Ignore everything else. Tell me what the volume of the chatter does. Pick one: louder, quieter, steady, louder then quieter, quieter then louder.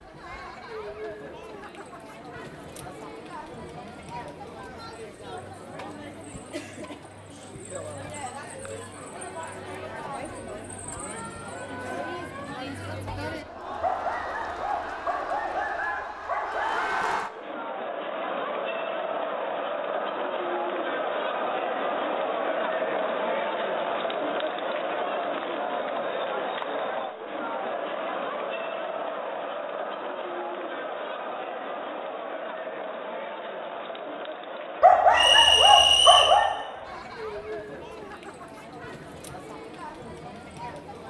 louder then quieter.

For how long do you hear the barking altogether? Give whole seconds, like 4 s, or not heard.
5 s.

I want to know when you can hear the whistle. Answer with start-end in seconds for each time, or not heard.
35.1-36.4.